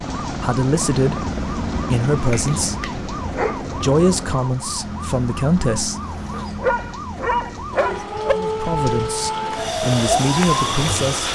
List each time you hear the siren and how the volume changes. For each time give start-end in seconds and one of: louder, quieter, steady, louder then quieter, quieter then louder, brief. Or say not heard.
0.1-11.3 louder.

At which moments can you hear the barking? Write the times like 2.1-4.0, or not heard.
2.3-3.6, 6.3-8.3.